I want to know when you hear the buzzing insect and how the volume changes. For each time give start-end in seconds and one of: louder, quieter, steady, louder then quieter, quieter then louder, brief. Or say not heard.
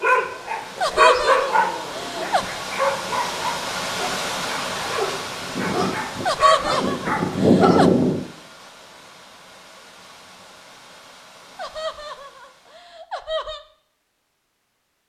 not heard.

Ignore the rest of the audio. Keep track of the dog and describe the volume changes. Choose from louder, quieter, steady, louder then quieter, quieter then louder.
quieter then louder.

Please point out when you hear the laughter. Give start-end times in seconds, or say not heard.
0.8-2.5, 6.2-7.9, 11.6-13.6.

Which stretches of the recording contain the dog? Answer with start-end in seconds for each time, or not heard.
0.0-8.2.